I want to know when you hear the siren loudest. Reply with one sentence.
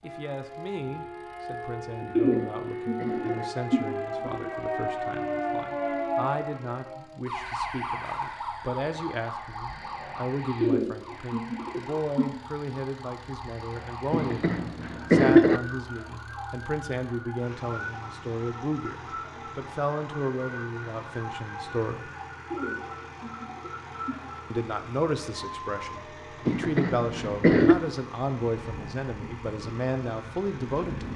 The loudest moment of the siren is at 6 seconds.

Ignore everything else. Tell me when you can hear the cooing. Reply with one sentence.
The cooing can be heard from 2.1 to 4.5 s, from 10.6 to 12.2 s and from 22.5 to 24.1 s.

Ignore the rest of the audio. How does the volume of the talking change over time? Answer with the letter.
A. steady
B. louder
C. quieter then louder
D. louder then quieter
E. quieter
B.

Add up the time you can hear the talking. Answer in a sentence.
The talking can be heard for 29 seconds in total.